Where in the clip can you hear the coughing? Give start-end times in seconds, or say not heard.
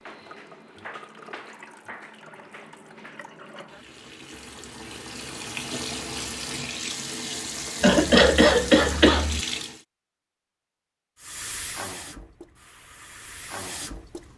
7.8-9.4.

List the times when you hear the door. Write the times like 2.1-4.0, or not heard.
not heard.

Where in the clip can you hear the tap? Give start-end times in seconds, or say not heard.
0.0-9.8, 11.2-14.3.